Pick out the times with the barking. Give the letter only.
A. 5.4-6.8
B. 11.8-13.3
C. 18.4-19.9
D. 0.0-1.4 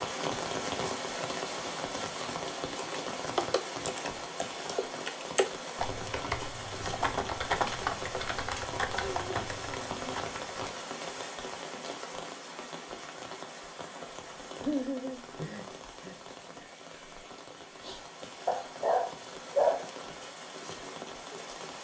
C.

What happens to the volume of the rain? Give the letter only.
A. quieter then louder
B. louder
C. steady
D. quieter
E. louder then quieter
D.